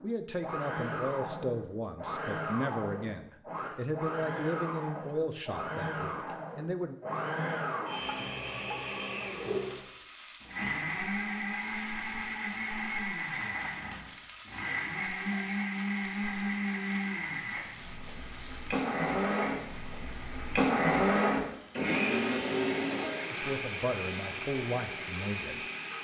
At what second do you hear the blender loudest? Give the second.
21 s.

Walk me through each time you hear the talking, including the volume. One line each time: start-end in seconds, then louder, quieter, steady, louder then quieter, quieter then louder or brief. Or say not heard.
0.0-7.0 quieter
23.3-25.6 brief.